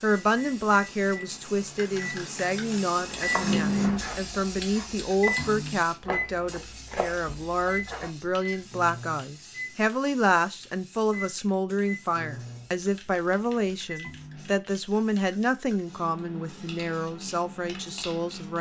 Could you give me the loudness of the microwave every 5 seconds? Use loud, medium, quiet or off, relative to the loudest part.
loud, loud, medium, off.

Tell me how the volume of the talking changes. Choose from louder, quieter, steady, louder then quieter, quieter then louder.
steady.